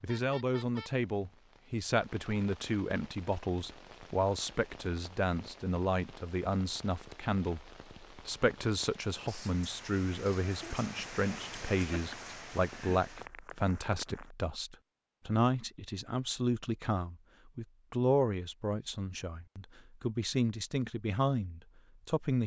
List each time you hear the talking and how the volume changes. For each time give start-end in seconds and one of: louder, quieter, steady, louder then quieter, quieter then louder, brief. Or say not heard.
0.0-22.4 steady.